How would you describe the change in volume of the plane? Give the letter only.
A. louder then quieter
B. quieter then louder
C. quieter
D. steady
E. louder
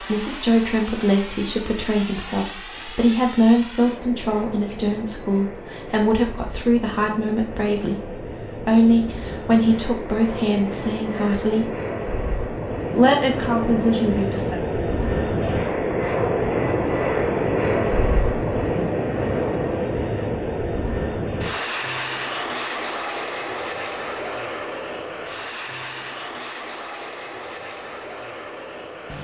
A.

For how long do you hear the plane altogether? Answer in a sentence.
You can hear the plane for 29 seconds altogether.